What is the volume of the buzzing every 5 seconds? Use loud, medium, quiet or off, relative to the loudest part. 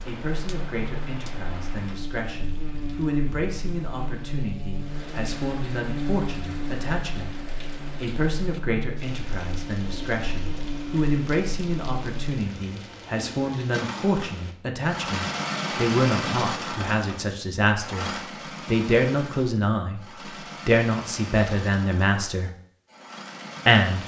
loud, loud, loud, off, off.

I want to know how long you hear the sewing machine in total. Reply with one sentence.
The sewing machine can be heard for 10 seconds in total.